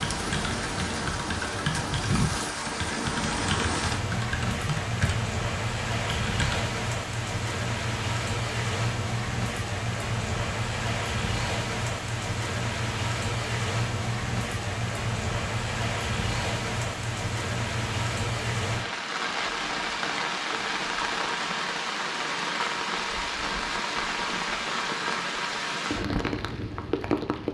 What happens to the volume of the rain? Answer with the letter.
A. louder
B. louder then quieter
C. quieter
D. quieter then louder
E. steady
E.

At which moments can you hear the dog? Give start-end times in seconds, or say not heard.
not heard.